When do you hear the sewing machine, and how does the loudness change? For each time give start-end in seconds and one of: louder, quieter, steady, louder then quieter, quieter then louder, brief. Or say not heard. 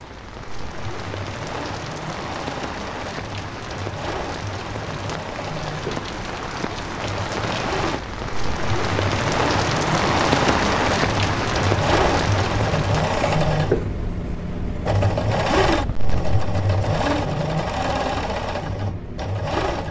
0.0-19.8 louder.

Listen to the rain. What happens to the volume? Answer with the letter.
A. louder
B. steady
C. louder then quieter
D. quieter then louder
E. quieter
A.